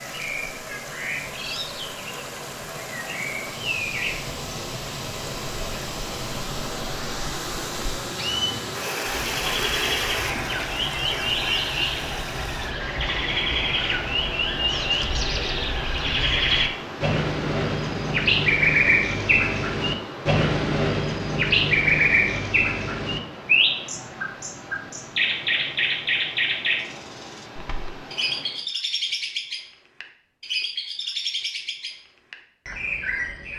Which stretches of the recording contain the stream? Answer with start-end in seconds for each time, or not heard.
0.0-28.6.